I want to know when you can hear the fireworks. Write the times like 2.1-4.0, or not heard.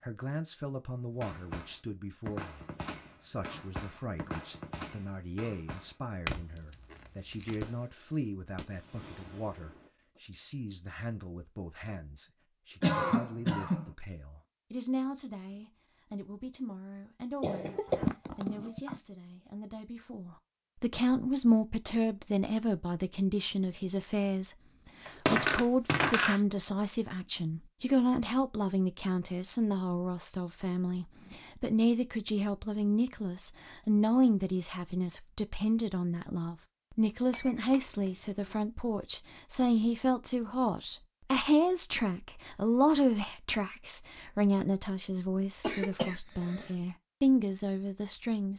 1.2-6.8, 7.6-10.2.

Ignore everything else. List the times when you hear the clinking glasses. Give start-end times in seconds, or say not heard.
6.2-7.7, 25.1-26.4, 37.3-38.5.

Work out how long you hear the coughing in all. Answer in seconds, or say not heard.
4 s.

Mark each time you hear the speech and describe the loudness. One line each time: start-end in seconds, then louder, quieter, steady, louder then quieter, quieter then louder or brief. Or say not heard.
0.0-48.5 louder.